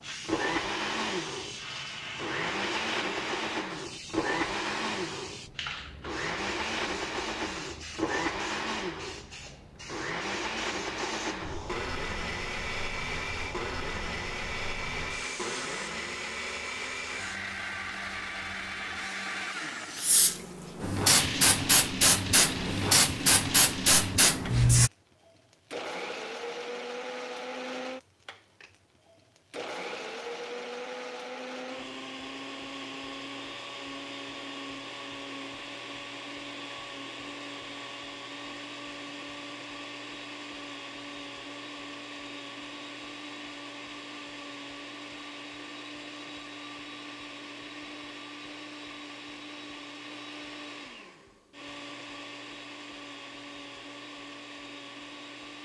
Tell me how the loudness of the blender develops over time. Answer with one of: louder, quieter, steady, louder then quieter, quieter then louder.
quieter.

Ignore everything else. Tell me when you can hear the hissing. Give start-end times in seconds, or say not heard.
0.0-24.9.